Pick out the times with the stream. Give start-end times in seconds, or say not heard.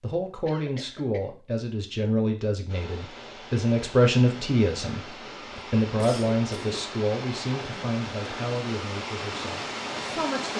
2.6-10.5.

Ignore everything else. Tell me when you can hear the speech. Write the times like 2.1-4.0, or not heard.
0.0-10.5.